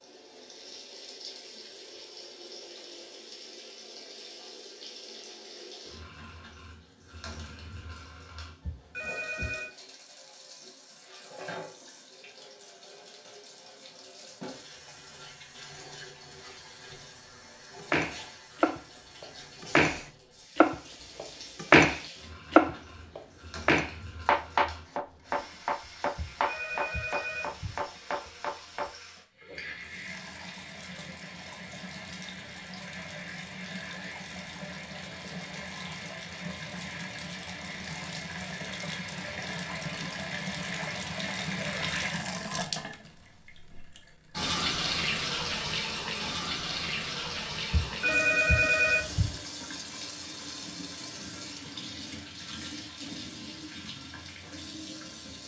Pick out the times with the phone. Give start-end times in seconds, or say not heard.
8.6-9.7, 26.1-27.9, 47.7-49.4.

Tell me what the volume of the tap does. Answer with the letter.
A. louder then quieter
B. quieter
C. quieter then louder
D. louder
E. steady
D.